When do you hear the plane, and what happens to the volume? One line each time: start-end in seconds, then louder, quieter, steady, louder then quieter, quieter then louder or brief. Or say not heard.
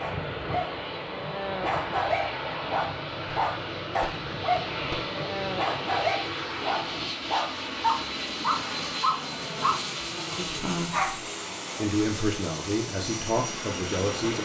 0.0-14.4 steady.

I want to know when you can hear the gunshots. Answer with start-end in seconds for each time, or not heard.
3.4-5.2.